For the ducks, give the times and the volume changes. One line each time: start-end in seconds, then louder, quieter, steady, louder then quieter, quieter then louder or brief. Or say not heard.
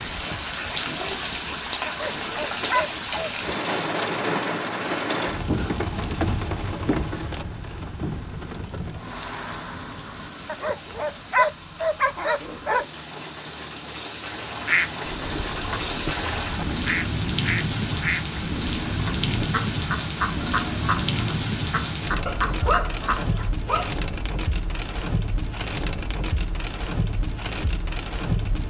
14.3-23.5 steady.